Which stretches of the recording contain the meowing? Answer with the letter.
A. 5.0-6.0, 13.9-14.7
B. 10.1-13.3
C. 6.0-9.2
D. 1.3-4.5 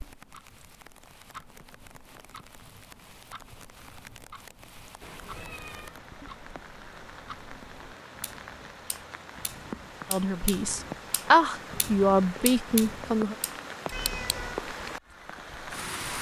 A.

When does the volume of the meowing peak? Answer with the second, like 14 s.
14 s.